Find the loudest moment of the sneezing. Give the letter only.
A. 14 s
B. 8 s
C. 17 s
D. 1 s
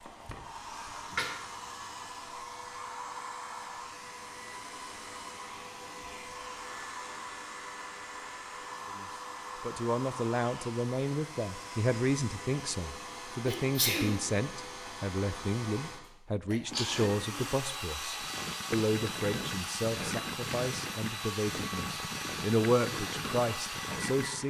A.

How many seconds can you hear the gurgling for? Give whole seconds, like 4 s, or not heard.
6 s.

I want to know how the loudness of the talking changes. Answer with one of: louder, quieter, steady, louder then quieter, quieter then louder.
steady.